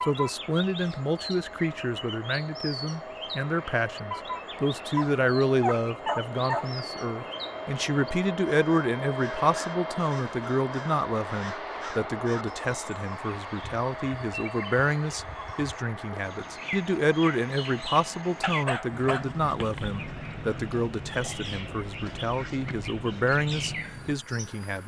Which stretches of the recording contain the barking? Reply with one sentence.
You can hear the barking from 5.0 to 6.8 s and from 18.4 to 20.0 s.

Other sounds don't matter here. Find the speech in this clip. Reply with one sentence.
You can hear the speech from 0.1 to 24.8 s.